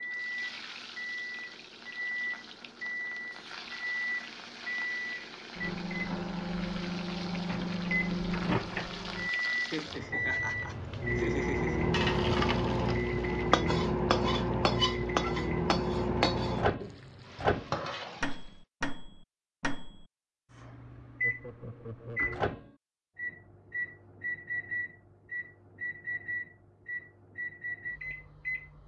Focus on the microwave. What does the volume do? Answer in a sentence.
The loudness of the microwave goes up, then down.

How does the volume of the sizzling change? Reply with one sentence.
The loudness of the sizzling goes up.